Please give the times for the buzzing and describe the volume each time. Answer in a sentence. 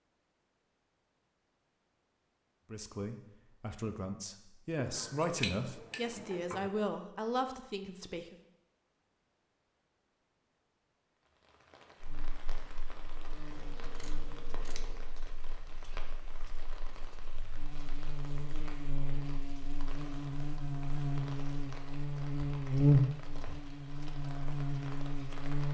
You can hear the buzzing from 12.0 to 25.6 s, getting quieter then louder.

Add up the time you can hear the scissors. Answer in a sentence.
You can hear the scissors for 4 seconds altogether.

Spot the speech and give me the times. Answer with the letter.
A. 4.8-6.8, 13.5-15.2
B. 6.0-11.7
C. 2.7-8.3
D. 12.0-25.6
C.